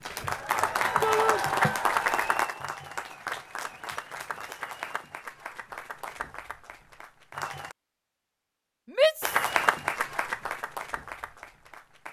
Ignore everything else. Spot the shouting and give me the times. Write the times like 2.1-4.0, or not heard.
1.0-1.4, 8.9-9.4.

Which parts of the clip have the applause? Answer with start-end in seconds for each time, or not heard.
0.0-7.8, 9.2-12.0.